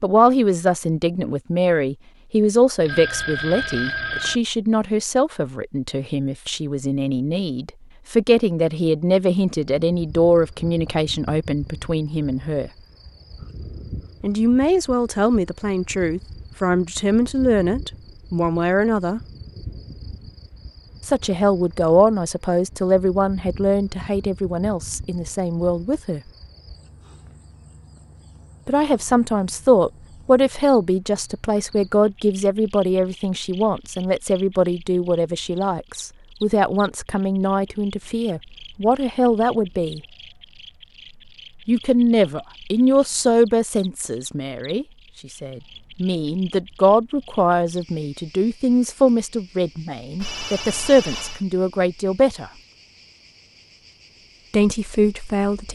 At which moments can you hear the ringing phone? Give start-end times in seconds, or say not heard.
2.9-4.4, 50.2-51.5.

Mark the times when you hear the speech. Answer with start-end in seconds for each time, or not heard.
0.0-12.7, 14.2-19.2, 21.1-26.2, 28.6-40.0, 41.6-52.5, 54.5-55.7.